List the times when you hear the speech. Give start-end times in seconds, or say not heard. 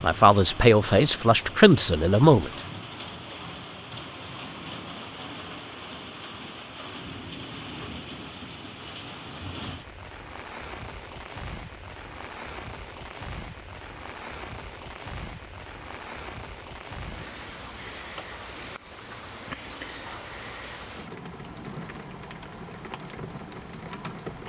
0.0-2.6.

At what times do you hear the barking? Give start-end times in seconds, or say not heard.
not heard.